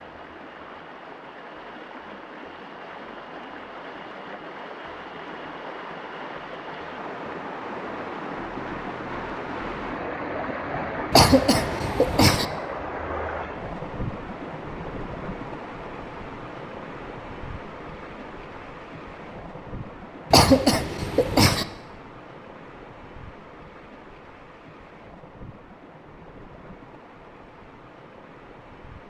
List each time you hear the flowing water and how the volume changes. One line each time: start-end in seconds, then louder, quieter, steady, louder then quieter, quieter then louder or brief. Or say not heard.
0.0-29.0 louder then quieter.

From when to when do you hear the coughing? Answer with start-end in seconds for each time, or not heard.
11.1-12.4, 20.3-21.6.